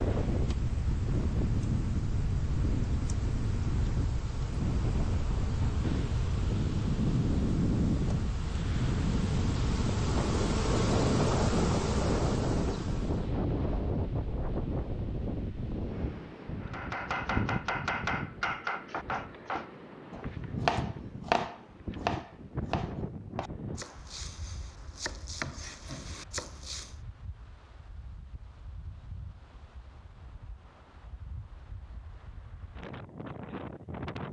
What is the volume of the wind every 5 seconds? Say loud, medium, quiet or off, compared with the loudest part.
loud, loud, loud, medium, medium, quiet, quiet.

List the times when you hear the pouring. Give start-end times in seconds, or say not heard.
not heard.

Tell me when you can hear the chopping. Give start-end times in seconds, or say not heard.
16.6-26.9.